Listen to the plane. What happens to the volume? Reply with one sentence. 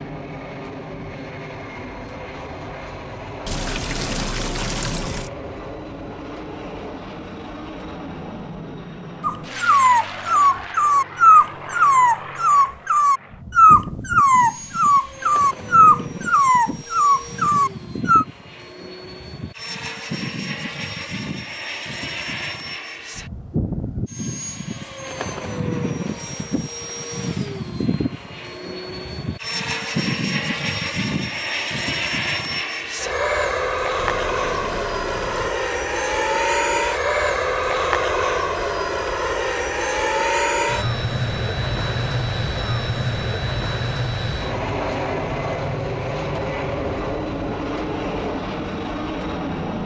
The volume of the plane goes up.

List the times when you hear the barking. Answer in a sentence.
The barking can be heard from 9.2 to 18.2 s.